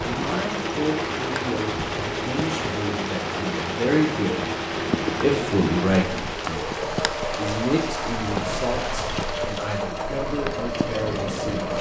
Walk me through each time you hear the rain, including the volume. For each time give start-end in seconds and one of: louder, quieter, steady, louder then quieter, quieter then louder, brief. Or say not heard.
0.0-11.7 steady.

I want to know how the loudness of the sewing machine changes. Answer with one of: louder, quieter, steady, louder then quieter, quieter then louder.
steady.